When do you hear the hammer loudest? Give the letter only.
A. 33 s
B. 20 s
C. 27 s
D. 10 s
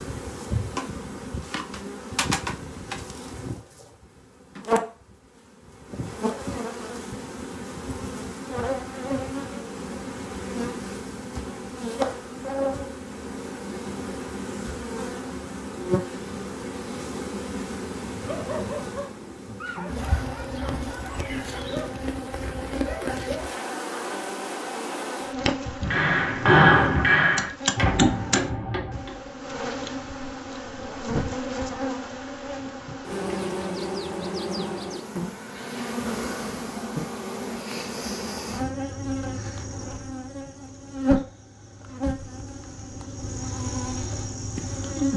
C.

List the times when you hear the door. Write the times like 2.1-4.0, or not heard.
not heard.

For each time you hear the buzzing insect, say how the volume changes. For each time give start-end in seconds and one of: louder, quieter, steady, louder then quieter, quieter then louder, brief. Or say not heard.
0.0-45.1 steady.